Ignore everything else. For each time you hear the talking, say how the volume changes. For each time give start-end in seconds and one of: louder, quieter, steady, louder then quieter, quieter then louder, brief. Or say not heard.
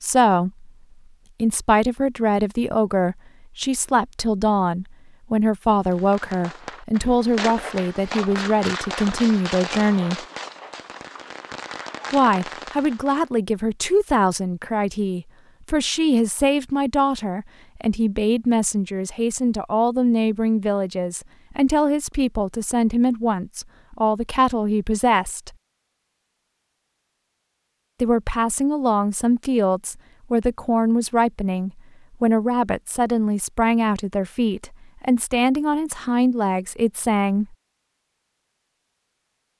0.0-0.7 brief
1.4-10.2 steady
12.1-25.5 steady
28.0-37.5 steady.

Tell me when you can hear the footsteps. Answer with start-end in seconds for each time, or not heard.
not heard.